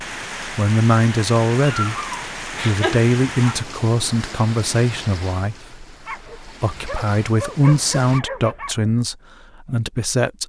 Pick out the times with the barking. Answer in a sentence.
You can hear the barking from 1.6 to 3.5 s and from 6.0 to 8.9 s.